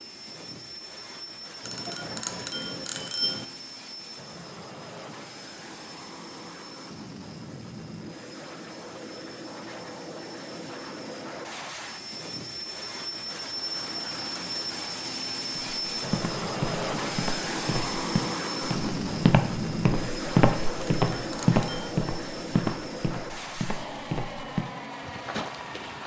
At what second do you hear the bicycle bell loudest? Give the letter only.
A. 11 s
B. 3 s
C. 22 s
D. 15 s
B.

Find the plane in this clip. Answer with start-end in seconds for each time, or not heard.
0.0-26.0.